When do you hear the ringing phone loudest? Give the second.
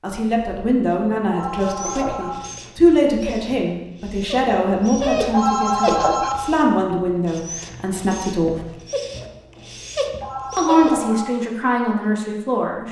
6 s.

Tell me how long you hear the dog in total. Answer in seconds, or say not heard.
10 s.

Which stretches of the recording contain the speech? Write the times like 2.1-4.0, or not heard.
0.0-8.6, 10.6-12.8.